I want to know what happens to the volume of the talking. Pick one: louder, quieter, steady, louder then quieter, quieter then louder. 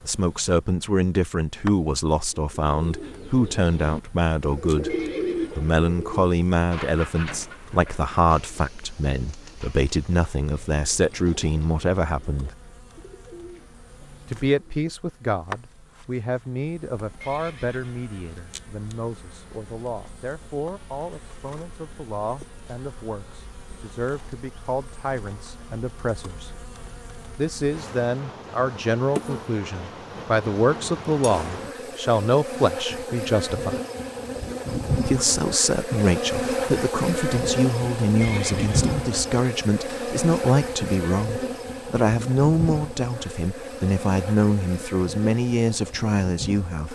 quieter then louder.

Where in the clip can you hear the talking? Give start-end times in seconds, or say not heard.
0.1-5.0, 5.5-12.6, 14.2-26.5, 27.4-33.8, 35.0-46.9.